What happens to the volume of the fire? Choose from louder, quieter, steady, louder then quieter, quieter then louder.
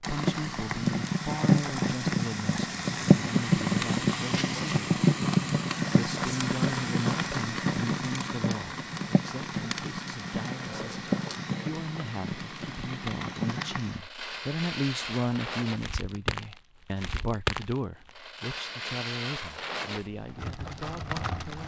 quieter.